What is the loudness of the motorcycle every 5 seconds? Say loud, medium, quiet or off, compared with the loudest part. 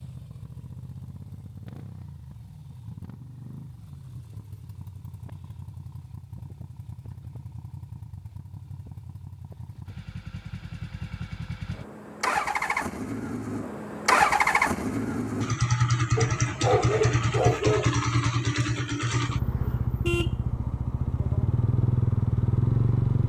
quiet, quiet, loud, loud, loud.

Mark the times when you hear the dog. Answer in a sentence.
The dog can be heard from 16.1 to 17.9 s.